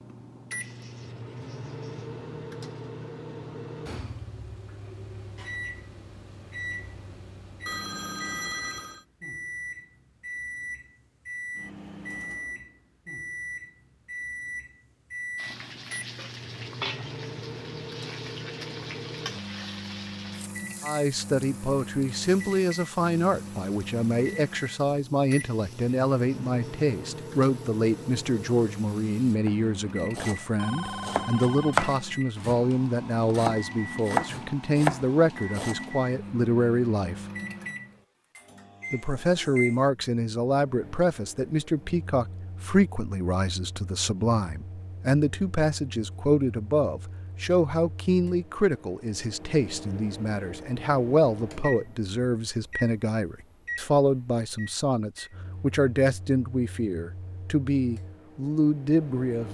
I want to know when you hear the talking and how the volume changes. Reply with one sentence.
You can hear the talking from 20.8 to 37.2 s, at a steady volume; and from 38.9 to 59.5 s, at a steady volume.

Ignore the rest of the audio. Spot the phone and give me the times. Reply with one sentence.
You can hear the phone from 7.7 to 9.1 s and from 30.6 to 31.8 s.